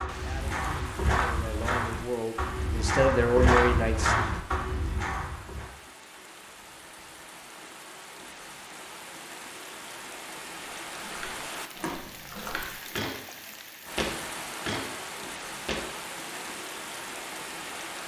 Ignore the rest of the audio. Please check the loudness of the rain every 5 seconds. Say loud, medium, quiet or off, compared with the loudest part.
medium, medium, loud, loud.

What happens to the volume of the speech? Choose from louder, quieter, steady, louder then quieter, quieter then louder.
louder.